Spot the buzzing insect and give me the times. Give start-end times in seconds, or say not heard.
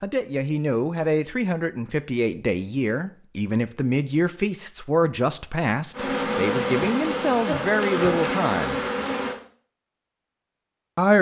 5.9-9.3.